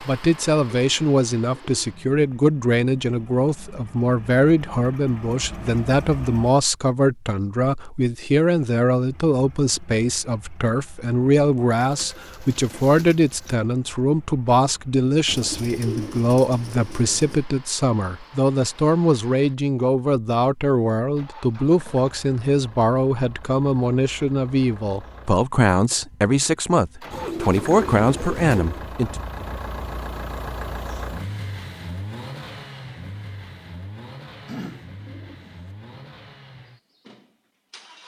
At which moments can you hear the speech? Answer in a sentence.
The speech can be heard from 0.0 to 29.1 s.